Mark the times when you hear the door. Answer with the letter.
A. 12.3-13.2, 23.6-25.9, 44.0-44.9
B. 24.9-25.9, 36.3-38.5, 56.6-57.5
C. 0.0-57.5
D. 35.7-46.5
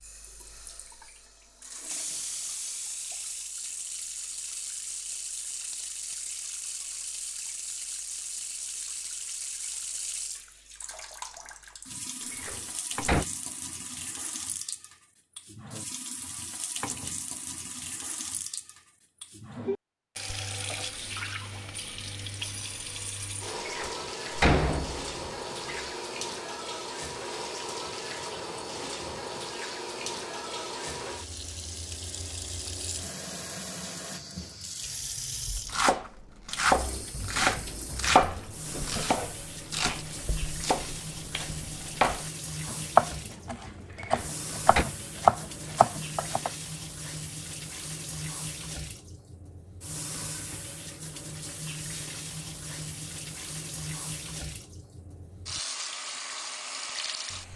A.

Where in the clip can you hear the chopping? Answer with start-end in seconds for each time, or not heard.
35.7-46.5.